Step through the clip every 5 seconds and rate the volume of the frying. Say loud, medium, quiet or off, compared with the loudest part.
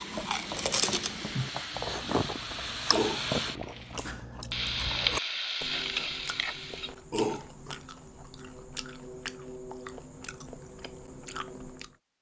loud, loud, off.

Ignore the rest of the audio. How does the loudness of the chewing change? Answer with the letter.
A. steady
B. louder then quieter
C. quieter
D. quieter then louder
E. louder
C.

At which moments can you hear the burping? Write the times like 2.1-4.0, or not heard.
2.9-4.2, 7.1-7.8.